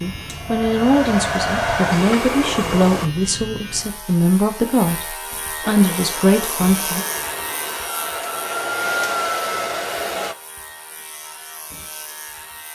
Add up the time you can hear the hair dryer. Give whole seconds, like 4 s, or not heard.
8 s.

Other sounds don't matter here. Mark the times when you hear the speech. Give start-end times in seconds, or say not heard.
0.0-7.0.